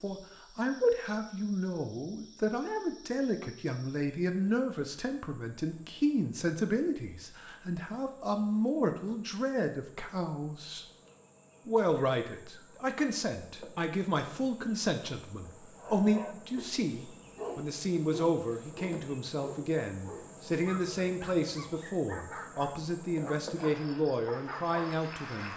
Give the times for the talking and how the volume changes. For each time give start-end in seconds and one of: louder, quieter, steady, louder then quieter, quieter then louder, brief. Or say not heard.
0.0-10.8 steady
11.7-25.5 steady.